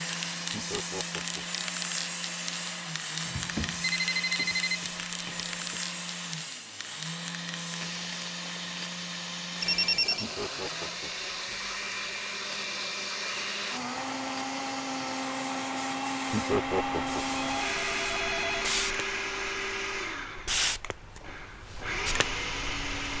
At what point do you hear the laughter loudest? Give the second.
17 s.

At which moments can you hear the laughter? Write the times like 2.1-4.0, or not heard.
0.5-1.6, 10.2-11.3, 16.3-17.4.